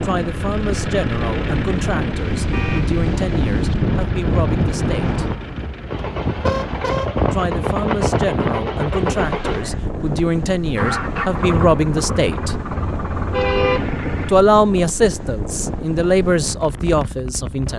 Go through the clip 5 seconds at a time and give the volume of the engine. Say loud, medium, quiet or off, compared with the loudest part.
medium, loud, loud, off.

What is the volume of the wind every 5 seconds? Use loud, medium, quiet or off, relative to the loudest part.
loud, loud, medium, medium.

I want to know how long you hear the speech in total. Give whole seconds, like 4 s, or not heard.
14 s.